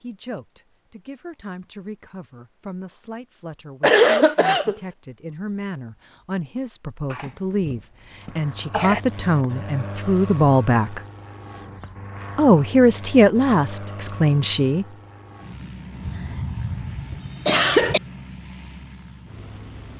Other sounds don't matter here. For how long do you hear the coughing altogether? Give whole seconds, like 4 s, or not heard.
5 s.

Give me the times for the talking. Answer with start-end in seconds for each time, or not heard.
0.0-11.0, 12.3-14.8.